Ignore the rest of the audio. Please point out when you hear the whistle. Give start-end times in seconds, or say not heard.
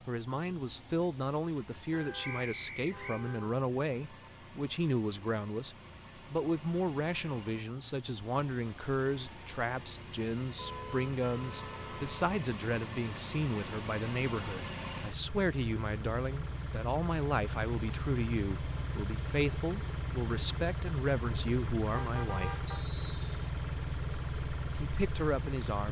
2.2-3.2, 22.6-23.3.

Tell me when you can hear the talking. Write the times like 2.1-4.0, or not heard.
0.1-22.6, 24.8-25.8.